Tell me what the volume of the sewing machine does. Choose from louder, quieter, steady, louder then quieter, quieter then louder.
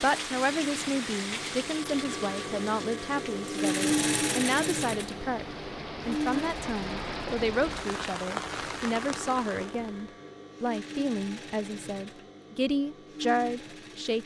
louder then quieter.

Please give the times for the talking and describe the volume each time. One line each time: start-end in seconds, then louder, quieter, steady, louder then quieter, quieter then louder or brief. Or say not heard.
0.0-14.2 steady.